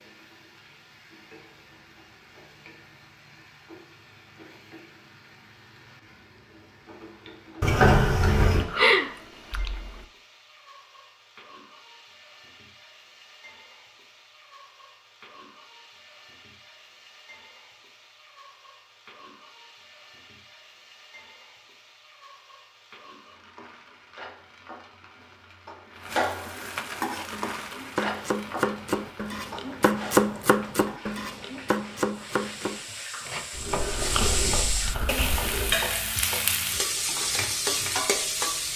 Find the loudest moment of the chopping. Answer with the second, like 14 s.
30 s.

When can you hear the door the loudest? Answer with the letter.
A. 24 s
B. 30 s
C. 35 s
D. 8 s
D.